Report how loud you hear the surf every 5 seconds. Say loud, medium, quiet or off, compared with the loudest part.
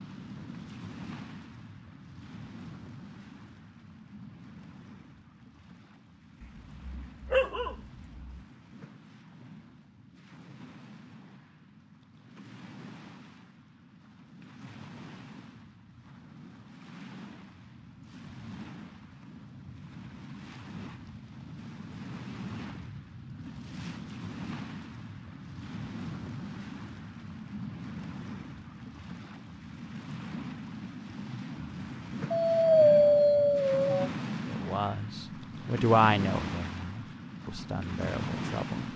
medium, quiet, quiet, medium, medium, medium, loud, loud.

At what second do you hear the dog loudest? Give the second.
33 s.